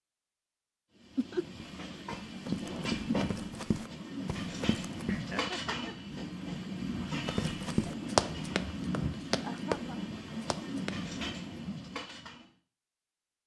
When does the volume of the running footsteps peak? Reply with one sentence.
The volume of the running footsteps peaks at 8 seconds.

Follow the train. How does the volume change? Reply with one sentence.
The volume of the train stays about the same.